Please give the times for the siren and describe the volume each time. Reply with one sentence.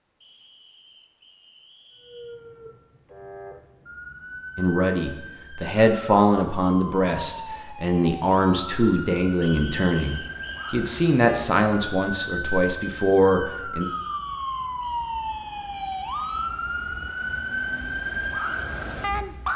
The siren can be heard from 1.9 to 19.5 s, getting louder.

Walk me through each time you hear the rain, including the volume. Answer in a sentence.
You can't hear the rain here.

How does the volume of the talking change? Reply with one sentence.
The volume of the talking stays about the same.